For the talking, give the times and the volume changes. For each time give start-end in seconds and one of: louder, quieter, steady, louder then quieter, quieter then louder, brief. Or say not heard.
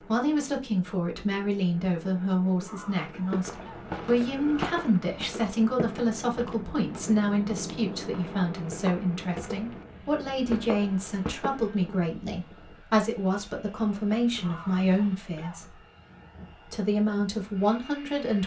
0.0-15.8 steady
16.6-18.4 brief.